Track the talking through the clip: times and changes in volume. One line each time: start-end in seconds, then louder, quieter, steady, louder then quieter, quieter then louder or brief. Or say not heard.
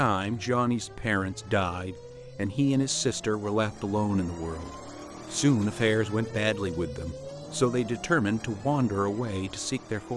0.0-10.1 steady.